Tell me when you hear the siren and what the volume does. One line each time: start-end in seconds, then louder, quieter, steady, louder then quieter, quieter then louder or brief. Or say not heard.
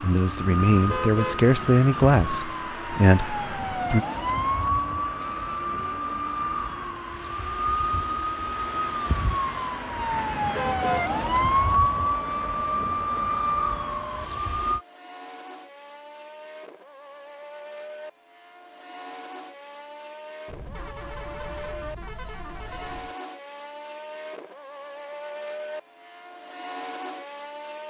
0.0-14.8 louder.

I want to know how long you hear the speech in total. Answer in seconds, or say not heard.
4 s.